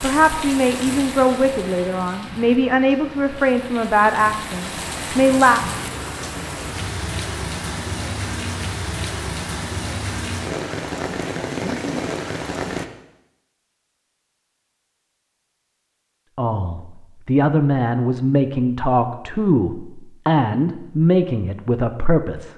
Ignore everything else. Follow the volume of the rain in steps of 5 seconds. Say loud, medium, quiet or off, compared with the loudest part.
medium, loud, loud, off, off.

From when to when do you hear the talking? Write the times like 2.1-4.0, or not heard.
0.0-5.7, 16.4-22.5.